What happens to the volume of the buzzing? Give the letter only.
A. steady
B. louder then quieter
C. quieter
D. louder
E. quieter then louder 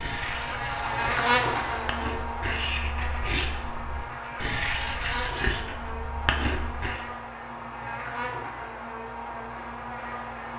C.